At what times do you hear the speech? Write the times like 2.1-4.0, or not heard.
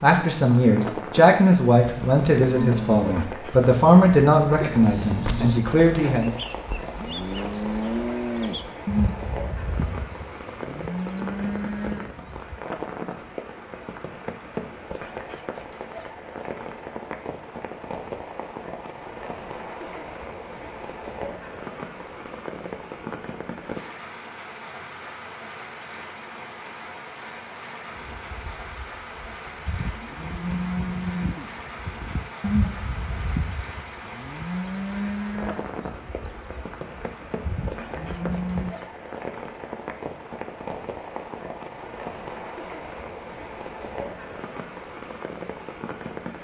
0.0-6.3.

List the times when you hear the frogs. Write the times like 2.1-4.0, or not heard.
not heard.